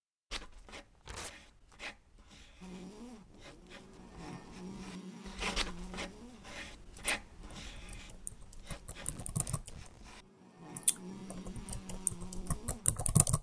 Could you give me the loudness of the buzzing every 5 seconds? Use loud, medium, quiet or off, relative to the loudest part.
loud, medium, loud.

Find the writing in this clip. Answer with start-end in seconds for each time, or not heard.
0.3-10.2.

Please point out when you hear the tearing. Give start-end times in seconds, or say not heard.
0.9-1.8, 8.9-10.2.